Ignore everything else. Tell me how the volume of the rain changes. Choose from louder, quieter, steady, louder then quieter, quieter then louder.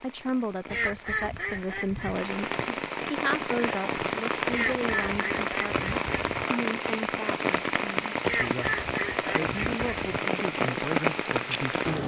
louder.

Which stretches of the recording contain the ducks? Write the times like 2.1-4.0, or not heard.
0.7-2.2, 4.5-6.5, 8.2-10.2.